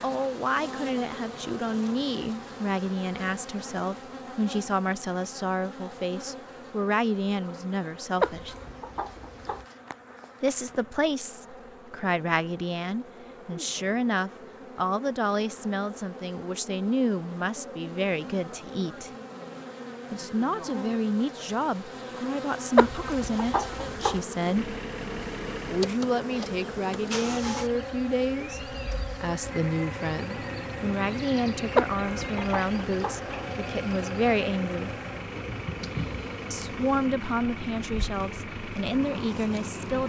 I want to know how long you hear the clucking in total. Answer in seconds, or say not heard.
4 s.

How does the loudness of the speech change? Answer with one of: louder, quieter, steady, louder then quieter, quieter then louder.
steady.